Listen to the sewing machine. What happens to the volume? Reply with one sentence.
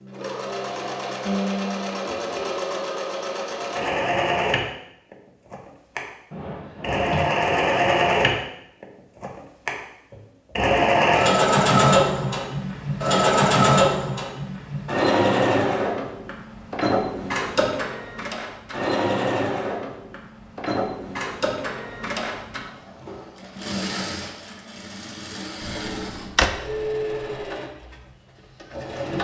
The volume of the sewing machine goes up, then down.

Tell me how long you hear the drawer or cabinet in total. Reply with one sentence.
The drawer or cabinet can be heard for 2 seconds in total.